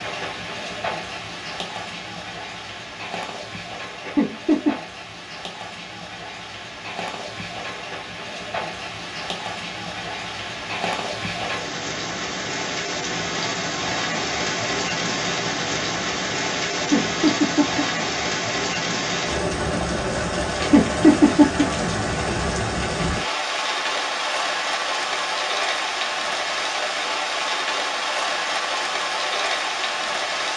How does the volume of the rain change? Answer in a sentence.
The loudness of the rain goes up.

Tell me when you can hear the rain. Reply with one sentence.
You can hear the rain from 0.0 to 30.5 s.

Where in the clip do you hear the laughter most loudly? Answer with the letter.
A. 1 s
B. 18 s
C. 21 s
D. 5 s
C.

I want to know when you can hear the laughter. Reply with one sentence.
The laughter can be heard from 4.0 to 4.8 s, from 16.8 to 17.9 s and from 20.6 to 21.6 s.